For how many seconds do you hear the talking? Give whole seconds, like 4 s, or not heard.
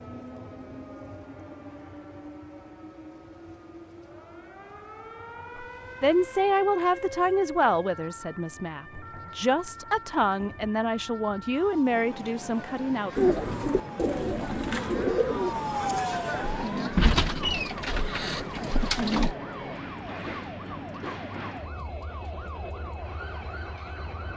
8 s.